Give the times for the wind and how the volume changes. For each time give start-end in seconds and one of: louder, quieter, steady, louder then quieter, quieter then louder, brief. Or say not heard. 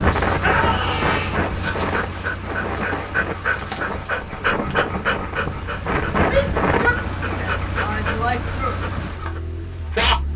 0.0-7.5 quieter then louder.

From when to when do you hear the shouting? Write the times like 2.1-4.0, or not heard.
0.4-1.4, 6.2-8.8.